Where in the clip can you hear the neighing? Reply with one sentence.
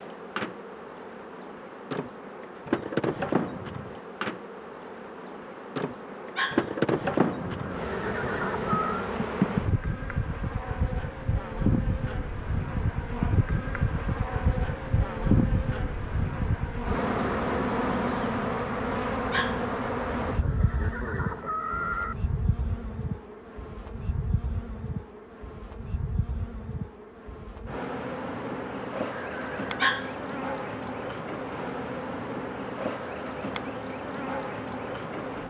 The neighing can be heard from 7.4 to 9.1 s, from 20.2 to 22.1 s and from 29.1 to 29.7 s.